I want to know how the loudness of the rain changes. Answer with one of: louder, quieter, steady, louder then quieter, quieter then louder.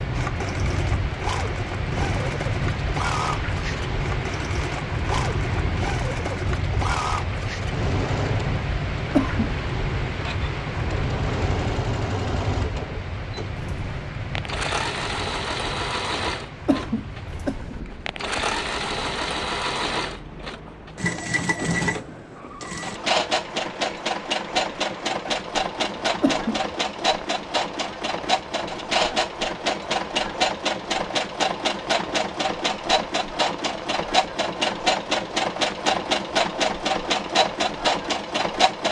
quieter.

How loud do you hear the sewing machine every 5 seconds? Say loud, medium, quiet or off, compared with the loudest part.
medium, medium, medium, medium, loud, loud, loud, loud.